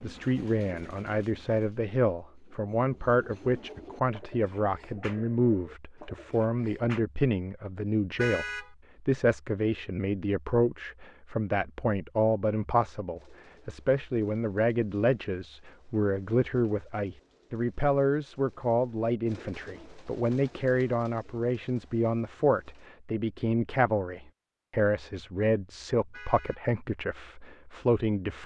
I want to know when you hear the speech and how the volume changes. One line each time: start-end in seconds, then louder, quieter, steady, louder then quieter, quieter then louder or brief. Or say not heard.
0.0-28.4 steady.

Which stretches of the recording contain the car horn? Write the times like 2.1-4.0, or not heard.
8.2-8.7, 26.1-26.6.